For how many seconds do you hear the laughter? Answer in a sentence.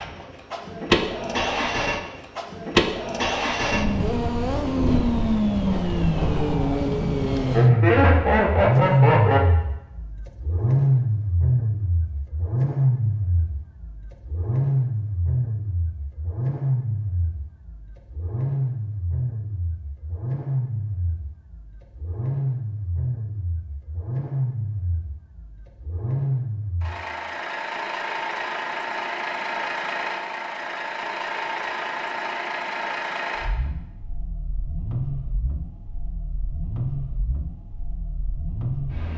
The laughter can be heard for 2 seconds in total.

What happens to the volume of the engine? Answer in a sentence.
The loudness of the engine goes down.